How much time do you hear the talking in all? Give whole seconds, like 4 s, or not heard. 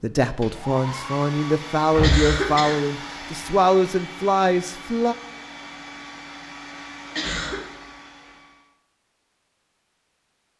5 s.